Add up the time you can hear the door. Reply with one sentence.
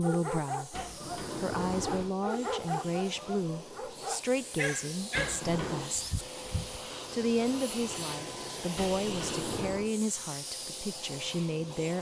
The door can be heard for 3 seconds in total.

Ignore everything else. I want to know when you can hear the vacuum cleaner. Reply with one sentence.
The vacuum cleaner can be heard from 0.0 to 11.9 s.